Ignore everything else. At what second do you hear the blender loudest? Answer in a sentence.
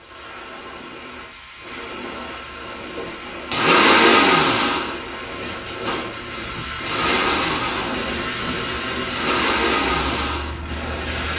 The volume of the blender peaks at 4 seconds.